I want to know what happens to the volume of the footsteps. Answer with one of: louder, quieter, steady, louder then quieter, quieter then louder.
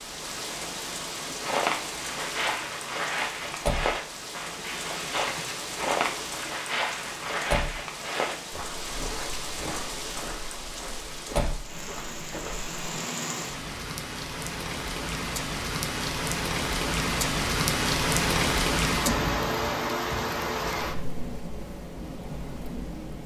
quieter.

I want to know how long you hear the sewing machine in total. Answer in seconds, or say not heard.
not heard.